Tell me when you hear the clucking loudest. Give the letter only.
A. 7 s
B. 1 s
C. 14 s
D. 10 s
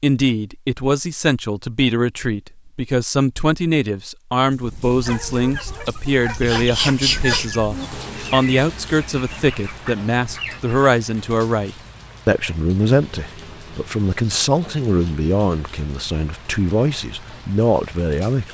A.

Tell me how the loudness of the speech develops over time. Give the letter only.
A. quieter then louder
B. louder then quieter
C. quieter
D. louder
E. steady
E.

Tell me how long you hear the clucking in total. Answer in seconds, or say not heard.
6 s.